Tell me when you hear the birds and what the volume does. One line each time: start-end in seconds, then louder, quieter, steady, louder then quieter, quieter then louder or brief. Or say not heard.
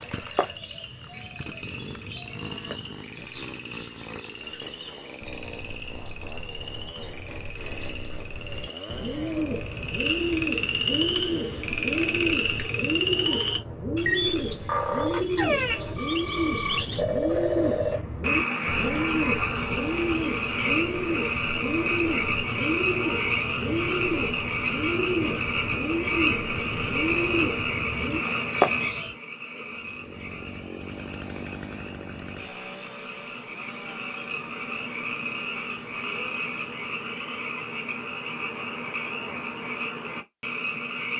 0.0-29.1 louder.